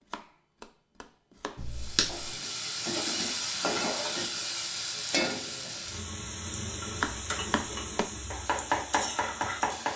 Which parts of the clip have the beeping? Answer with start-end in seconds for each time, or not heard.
1.6-2.3.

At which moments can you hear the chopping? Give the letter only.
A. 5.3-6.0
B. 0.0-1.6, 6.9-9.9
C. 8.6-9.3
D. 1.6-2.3
B.